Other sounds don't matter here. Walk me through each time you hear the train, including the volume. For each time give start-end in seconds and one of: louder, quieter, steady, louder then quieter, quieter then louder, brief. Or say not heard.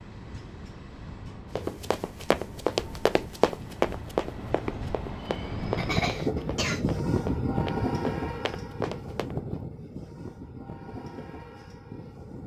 0.0-12.4 louder then quieter.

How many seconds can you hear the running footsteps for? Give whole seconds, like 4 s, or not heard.
8 s.